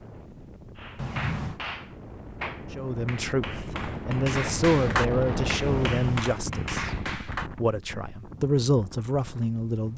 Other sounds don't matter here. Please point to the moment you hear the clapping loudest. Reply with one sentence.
The volume of the clapping peaks at 5 seconds.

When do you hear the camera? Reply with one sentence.
You can hear the camera from 0.9 to 1.6 s and from 5.6 to 6.3 s.